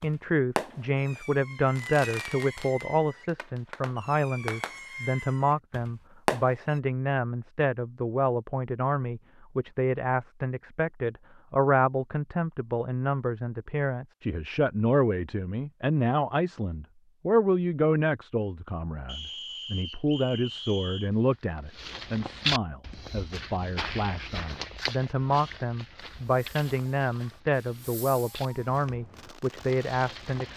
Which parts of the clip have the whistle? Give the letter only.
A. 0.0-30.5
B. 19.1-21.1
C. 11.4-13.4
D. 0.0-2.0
B.